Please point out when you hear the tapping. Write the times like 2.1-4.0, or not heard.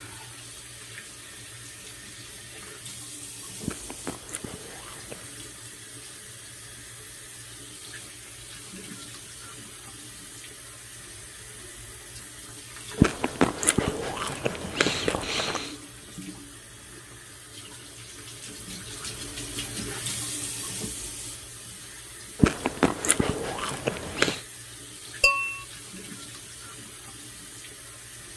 25.2-25.6.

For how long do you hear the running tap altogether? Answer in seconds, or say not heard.
28 s.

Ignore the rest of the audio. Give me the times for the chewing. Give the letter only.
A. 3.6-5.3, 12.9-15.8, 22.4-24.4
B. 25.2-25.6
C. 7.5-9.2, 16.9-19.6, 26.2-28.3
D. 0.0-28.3
A.